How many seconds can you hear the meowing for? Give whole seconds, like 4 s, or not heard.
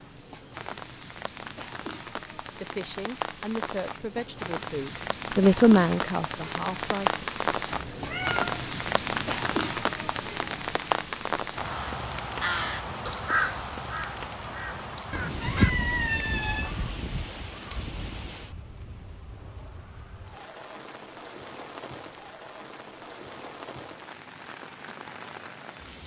2 s.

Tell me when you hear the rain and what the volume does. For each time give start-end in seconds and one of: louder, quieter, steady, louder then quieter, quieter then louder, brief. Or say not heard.
0.0-26.0 louder then quieter.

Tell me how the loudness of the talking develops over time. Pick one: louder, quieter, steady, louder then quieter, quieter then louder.
louder then quieter.